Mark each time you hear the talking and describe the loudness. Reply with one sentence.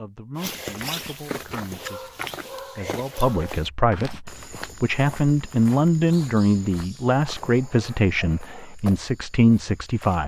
The talking can be heard from 0.0 to 10.2 s, getting louder.